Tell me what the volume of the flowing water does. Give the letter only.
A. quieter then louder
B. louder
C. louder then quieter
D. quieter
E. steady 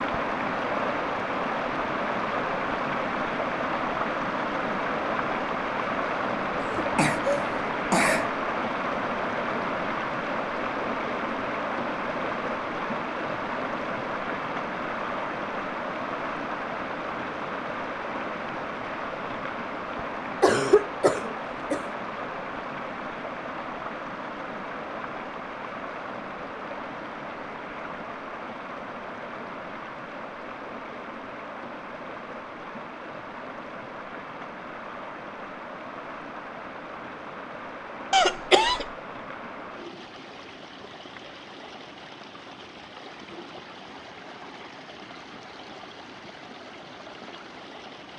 D.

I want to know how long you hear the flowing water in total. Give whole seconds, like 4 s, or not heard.
48 s.